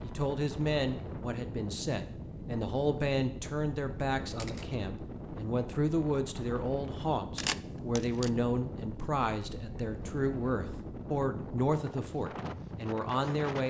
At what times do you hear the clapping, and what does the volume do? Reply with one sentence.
You can't hear the clapping here.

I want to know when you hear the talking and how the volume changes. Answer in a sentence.
The talking can be heard from 0.0 to 13.6 s, at a steady volume.